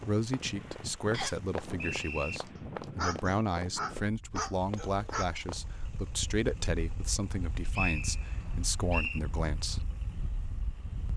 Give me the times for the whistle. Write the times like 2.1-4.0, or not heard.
1.1-2.4, 7.3-9.2.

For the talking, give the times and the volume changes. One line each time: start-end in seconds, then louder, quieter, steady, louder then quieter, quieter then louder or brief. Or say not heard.
0.1-9.8 steady.